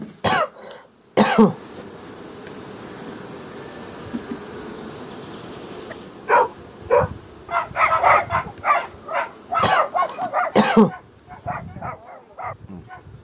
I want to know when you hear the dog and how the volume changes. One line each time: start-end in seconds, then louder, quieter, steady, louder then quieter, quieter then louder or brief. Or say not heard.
5.9-13.0 quieter.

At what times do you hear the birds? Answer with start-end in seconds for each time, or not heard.
not heard.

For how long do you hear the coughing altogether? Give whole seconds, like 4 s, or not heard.
3 s.